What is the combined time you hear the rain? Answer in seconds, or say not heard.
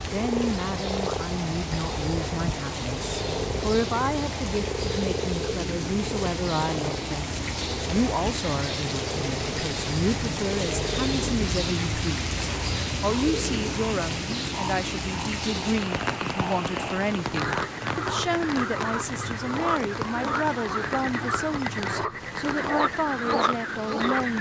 24 s.